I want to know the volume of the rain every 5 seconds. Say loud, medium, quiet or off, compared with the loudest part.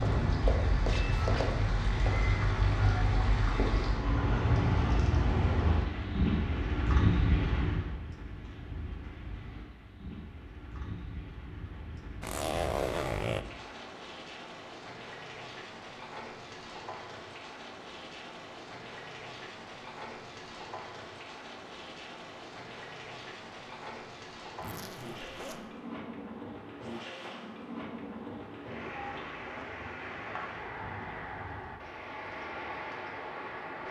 loud, loud, quiet, quiet, quiet, medium, medium.